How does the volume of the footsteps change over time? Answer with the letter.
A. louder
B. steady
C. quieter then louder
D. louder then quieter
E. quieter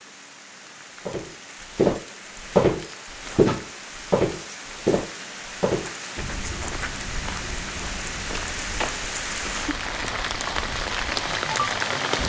E.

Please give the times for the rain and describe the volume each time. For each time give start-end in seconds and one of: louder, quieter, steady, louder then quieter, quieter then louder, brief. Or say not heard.
0.0-12.2 louder.